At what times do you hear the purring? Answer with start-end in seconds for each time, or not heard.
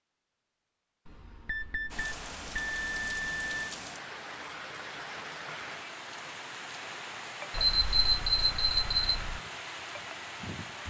not heard.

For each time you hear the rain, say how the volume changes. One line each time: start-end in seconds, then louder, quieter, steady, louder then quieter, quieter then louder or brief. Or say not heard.
1.9-10.8 steady.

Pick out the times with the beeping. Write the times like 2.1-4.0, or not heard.
1.1-3.8, 7.5-9.4.